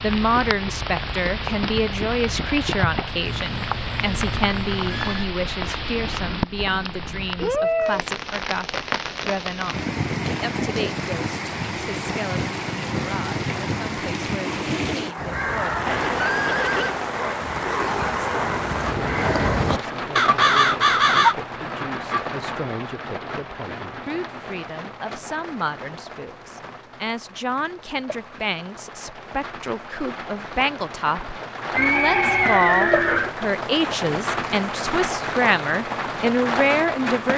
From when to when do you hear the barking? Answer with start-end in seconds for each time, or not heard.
not heard.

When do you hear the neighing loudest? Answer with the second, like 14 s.
33 s.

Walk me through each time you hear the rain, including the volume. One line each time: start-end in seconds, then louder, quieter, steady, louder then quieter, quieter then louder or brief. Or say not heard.
0.0-37.3 quieter then louder.